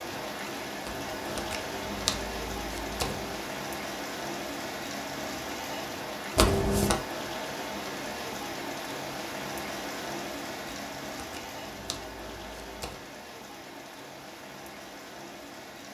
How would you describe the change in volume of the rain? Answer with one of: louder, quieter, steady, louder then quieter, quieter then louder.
quieter.